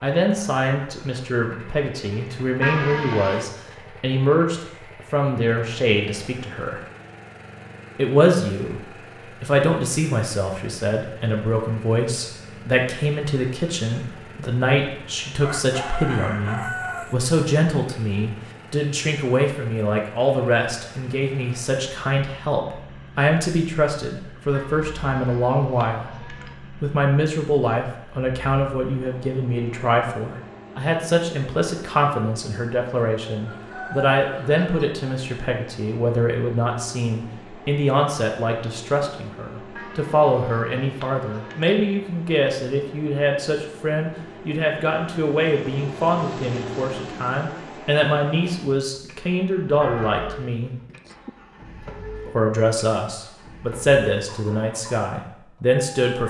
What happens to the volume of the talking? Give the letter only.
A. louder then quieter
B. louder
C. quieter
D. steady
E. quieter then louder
D.